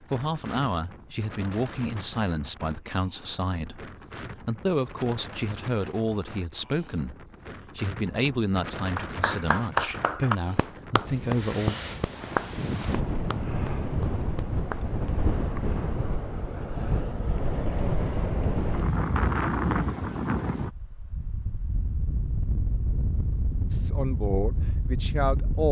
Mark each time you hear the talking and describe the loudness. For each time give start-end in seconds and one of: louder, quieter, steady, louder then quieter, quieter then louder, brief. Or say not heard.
0.0-11.8 steady
23.7-25.6 brief.